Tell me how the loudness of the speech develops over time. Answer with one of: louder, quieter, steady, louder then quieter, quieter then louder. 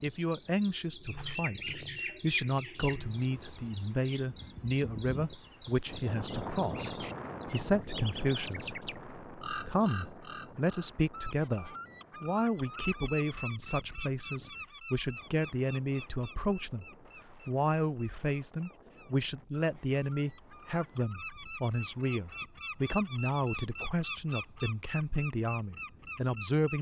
steady.